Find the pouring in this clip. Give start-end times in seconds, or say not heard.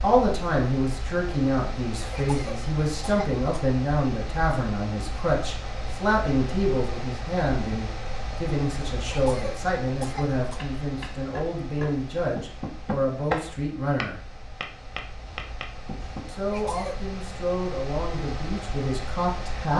not heard.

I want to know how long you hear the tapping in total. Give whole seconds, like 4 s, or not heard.
6 s.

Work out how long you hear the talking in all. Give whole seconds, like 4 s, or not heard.
18 s.